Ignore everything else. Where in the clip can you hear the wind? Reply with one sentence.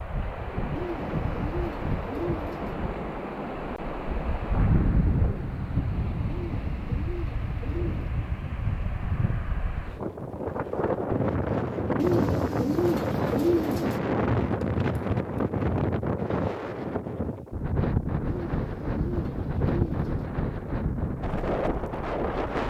You can hear the wind from 0.0 to 22.6 s.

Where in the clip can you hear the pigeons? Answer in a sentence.
You can hear the pigeons from 0.8 to 2.8 s, from 6.2 to 8.1 s, from 11.9 to 14.0 s and from 18.2 to 20.3 s.